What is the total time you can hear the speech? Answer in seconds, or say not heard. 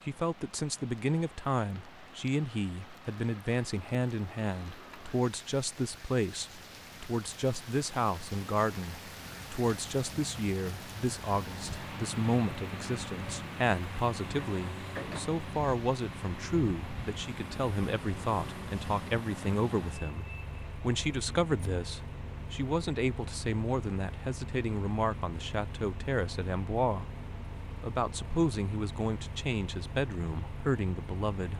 31 s.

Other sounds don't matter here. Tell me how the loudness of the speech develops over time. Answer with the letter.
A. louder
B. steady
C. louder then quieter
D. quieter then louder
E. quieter
B.